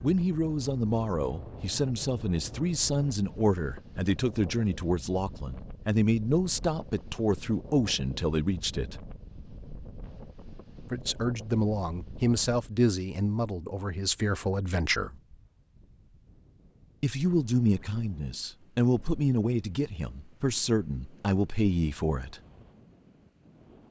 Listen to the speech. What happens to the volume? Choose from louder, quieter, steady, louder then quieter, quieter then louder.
steady.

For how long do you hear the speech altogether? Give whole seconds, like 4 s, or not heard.
19 s.